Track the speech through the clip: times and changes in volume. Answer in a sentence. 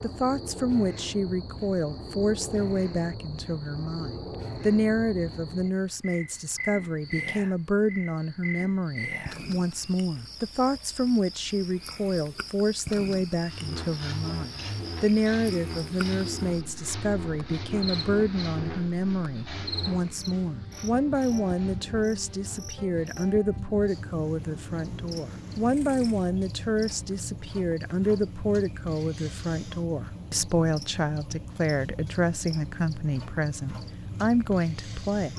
You can hear the speech from 0.0 to 35.3 s, at a steady volume.